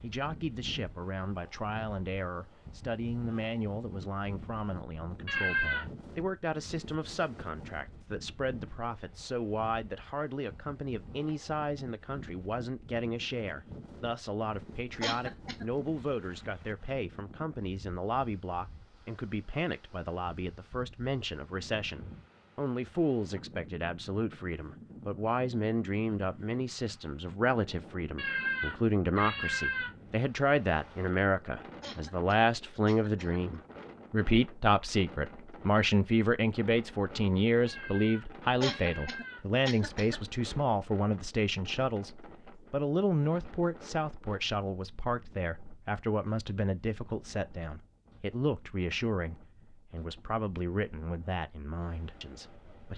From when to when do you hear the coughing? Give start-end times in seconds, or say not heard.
15.0-15.7, 31.8-33.4, 38.6-40.2.